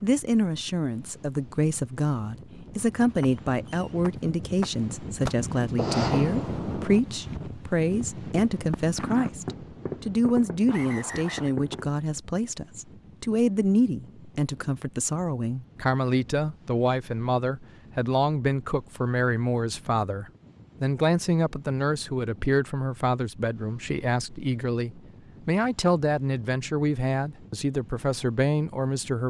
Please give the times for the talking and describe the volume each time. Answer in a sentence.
The talking can be heard from 0.0 to 29.2 s, at a steady volume.